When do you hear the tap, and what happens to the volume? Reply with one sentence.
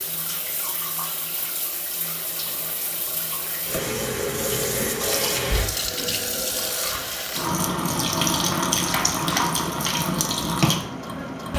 You can hear the tap from 0.0 to 11.5 s, getting louder.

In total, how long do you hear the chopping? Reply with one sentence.
The chopping can be heard for 3 seconds in total.